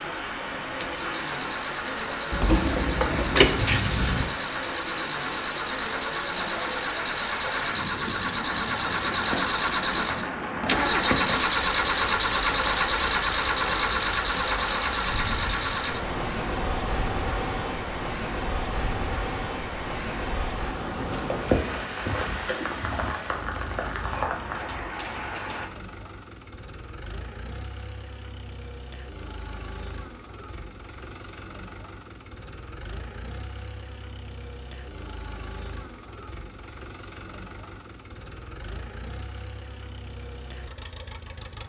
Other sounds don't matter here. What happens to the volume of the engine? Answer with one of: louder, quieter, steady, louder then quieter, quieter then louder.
louder then quieter.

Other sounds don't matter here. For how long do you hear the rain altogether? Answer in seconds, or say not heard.
26 s.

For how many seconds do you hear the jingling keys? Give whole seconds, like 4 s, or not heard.
3 s.